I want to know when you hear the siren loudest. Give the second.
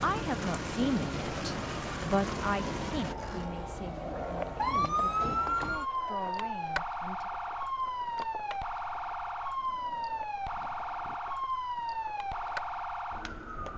5 s.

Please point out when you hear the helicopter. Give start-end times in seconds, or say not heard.
0.0-3.1.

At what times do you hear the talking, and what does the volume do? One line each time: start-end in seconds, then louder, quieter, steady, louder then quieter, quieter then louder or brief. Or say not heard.
0.0-7.3 quieter.